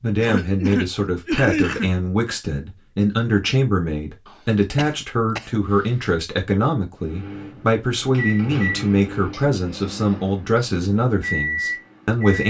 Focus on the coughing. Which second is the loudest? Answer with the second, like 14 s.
1 s.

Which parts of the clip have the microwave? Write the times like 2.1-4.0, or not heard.
7.0-12.4.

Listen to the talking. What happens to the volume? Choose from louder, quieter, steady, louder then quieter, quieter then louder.
steady.